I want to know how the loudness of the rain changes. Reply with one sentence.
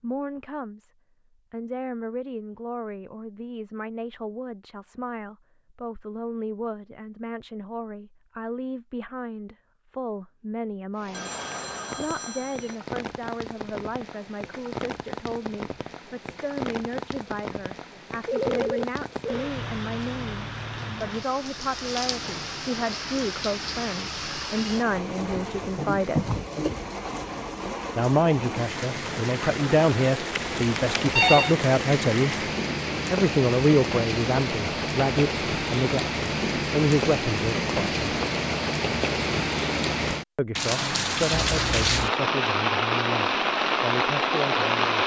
The volume of the rain goes up.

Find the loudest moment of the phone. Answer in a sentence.
The volume of the phone peaks at 31 seconds.